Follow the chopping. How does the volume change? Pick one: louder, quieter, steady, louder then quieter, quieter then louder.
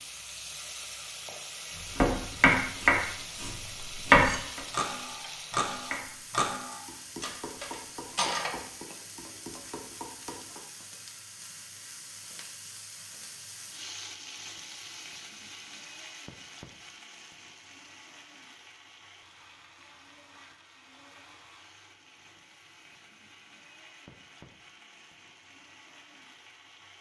quieter.